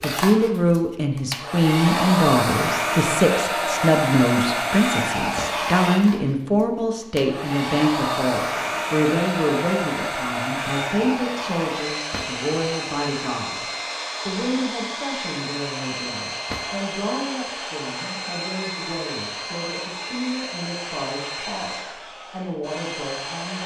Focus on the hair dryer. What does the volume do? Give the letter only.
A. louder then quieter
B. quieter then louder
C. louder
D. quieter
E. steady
D.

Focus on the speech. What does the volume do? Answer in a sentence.
The volume of the speech goes down.